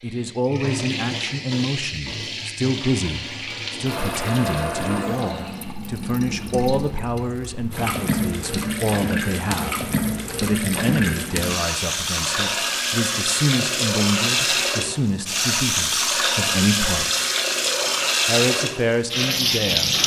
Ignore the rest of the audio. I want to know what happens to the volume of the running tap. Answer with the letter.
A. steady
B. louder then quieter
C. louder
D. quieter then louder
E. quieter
C.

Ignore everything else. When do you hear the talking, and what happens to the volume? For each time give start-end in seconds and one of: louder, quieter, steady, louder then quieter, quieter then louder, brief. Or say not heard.
0.0-17.1 steady
18.2-19.9 brief.